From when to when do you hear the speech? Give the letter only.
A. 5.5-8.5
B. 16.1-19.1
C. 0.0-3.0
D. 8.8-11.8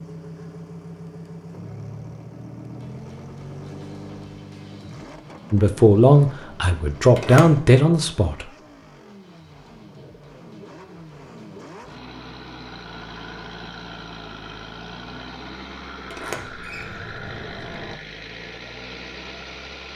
A.